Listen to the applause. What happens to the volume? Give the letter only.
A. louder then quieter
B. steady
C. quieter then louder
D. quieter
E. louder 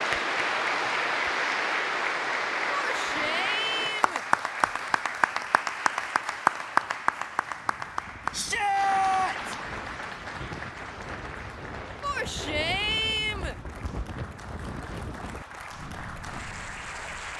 D.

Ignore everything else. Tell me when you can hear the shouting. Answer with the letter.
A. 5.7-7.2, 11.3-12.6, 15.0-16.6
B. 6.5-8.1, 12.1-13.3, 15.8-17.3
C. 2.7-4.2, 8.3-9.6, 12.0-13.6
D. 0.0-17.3
C.